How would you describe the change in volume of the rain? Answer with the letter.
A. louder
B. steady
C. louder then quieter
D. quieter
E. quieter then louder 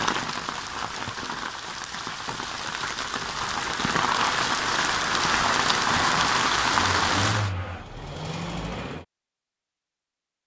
A.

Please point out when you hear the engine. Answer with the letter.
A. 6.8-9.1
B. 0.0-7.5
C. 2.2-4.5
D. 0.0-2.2
A.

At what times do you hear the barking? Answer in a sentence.
The barking can't be heard in this clip.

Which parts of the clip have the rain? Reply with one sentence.
The rain can be heard from 0.0 to 7.5 s.